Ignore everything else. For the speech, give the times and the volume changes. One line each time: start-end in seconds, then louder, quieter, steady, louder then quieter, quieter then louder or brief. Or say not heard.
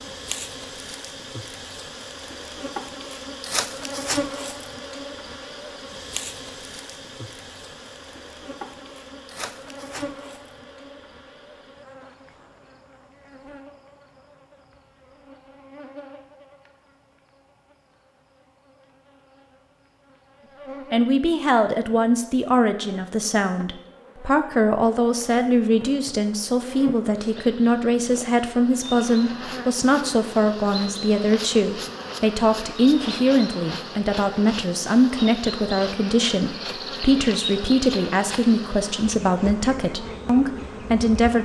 20.9-41.4 steady.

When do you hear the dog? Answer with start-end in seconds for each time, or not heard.
not heard.